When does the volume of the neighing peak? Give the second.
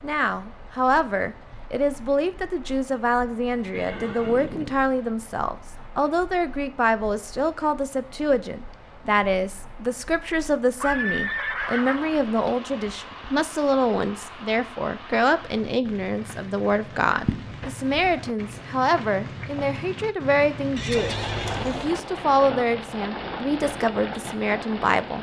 11 s.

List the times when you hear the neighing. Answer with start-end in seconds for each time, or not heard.
3.7-4.8, 10.8-12.2, 20.8-21.9.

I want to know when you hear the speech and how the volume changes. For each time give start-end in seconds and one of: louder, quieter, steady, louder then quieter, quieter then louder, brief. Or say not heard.
0.0-25.1 steady.